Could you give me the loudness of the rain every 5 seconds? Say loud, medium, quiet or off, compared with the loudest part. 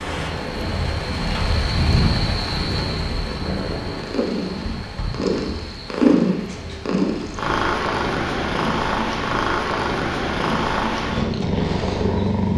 loud, medium, off.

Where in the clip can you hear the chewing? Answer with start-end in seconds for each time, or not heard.
not heard.